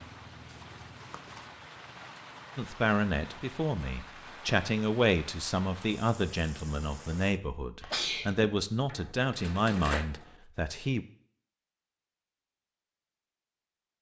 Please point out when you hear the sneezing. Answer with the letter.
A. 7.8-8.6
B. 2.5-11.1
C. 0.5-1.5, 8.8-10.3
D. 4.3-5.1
A.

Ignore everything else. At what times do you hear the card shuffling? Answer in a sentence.
The card shuffling can be heard from 0.5 to 1.5 s and from 8.8 to 10.3 s.